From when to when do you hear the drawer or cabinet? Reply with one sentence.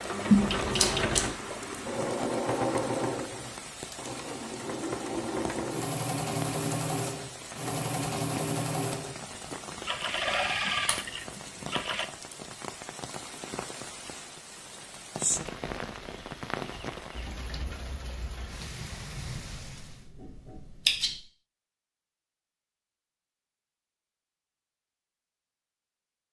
The drawer or cabinet can't be heard in this clip.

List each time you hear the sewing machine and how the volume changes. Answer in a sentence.
You can hear the sewing machine from 0.0 to 12.1 s, at a steady volume.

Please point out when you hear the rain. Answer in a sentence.
The rain can be heard from 0.0 to 20.1 s.